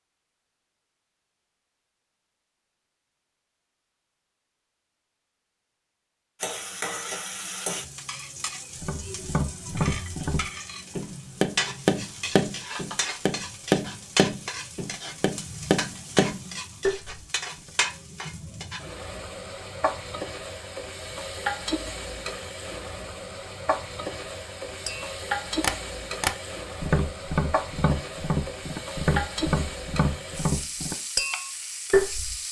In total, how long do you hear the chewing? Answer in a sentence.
The chewing can't be heard in this clip.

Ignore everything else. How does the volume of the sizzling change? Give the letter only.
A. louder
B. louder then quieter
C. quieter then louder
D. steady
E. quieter
D.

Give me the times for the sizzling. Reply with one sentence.
You can hear the sizzling from 6.4 to 32.4 s.